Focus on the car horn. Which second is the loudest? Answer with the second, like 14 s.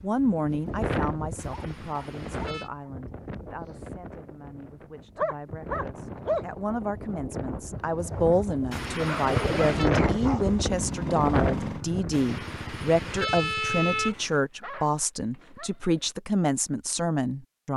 14 s.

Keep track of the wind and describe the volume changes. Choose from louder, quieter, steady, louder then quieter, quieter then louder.
quieter then louder.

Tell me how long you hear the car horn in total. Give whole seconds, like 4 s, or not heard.
5 s.